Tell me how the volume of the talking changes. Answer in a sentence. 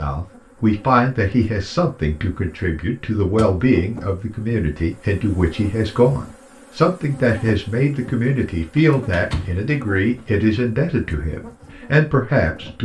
The loudness of the talking stays about the same.